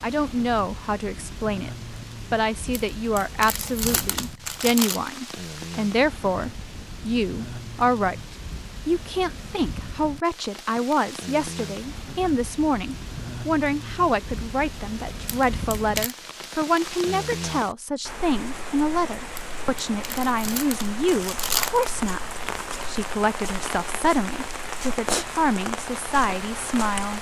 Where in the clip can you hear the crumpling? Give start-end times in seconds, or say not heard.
2.8-5.0, 15.2-16.1, 19.4-21.9.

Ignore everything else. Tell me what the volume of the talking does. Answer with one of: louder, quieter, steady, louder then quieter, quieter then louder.
steady.